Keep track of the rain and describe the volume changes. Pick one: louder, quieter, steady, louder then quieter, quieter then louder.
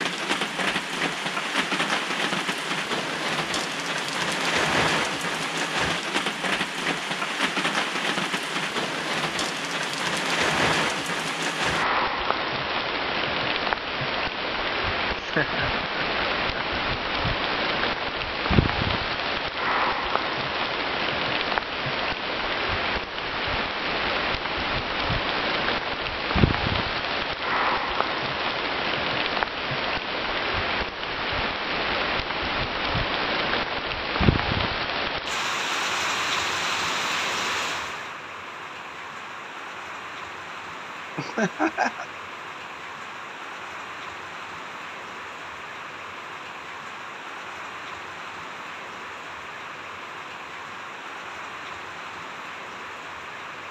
quieter.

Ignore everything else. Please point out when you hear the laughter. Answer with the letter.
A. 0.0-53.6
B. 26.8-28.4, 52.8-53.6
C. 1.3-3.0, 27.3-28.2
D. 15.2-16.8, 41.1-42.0
D.